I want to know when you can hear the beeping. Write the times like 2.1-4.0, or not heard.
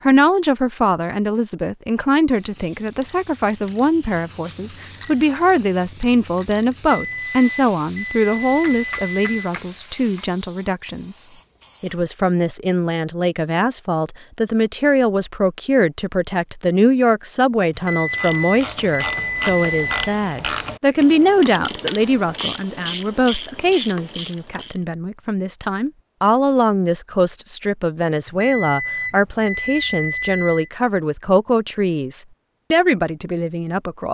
6.8-9.3, 17.8-19.9, 28.2-30.7.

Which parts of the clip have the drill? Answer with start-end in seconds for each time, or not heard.
not heard.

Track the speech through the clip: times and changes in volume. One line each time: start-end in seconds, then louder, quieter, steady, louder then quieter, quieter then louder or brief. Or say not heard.
0.0-34.1 steady.